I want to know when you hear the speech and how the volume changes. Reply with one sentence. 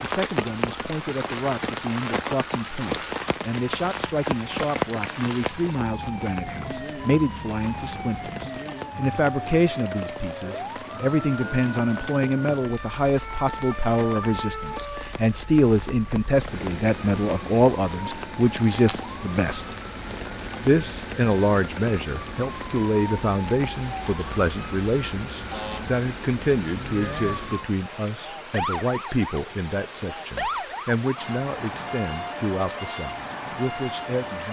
You can hear the speech from 0.0 to 19.6 s, getting louder; and from 20.6 to 34.4 s, getting quieter.